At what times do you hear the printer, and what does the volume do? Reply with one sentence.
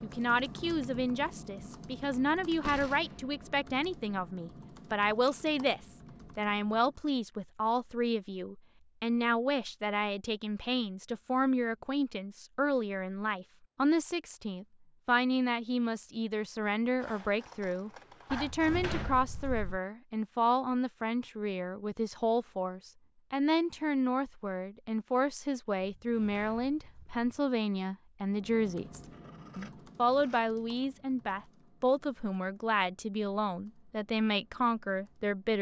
The printer can't be heard in this clip.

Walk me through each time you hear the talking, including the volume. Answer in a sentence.
The talking can be heard from 0.0 to 35.5 s, at a steady volume.